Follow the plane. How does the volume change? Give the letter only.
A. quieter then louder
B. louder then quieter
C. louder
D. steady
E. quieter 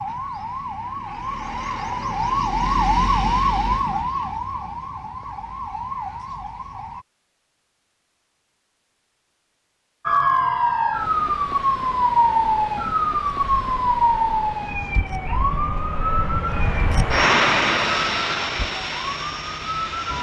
B.